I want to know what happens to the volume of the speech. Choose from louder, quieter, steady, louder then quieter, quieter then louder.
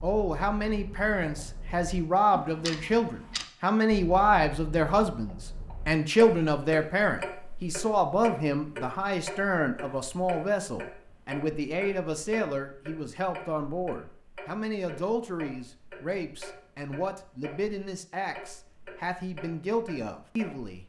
quieter.